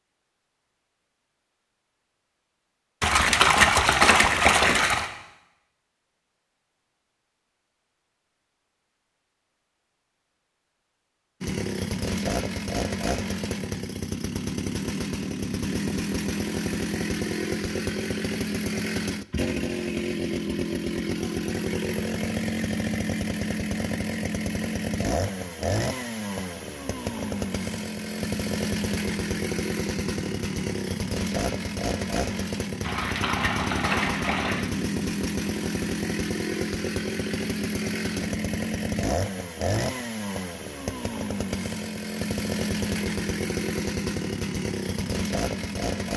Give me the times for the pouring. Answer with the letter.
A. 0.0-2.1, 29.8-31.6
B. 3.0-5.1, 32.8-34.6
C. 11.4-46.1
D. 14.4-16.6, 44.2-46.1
B.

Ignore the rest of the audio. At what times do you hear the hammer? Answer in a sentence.
The hammer can't be heard in this clip.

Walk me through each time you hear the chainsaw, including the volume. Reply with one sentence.
The chainsaw can be heard from 11.4 to 46.1 s, at a steady volume.